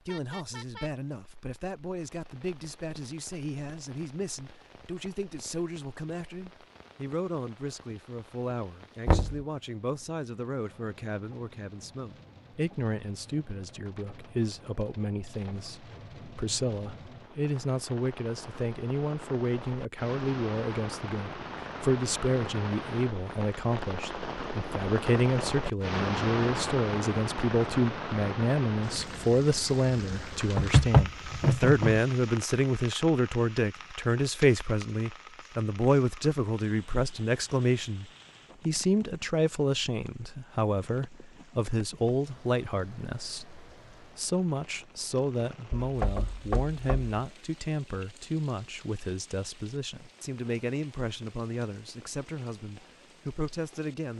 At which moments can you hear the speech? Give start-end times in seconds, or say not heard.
0.1-54.1.